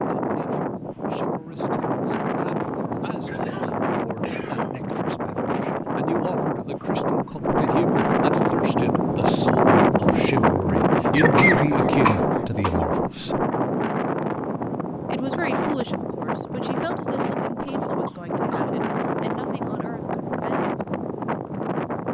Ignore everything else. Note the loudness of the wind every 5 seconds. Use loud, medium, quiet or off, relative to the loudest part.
medium, loud, loud, medium, medium.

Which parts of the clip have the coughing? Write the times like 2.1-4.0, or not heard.
3.2-4.8, 11.2-13.0, 17.6-18.8.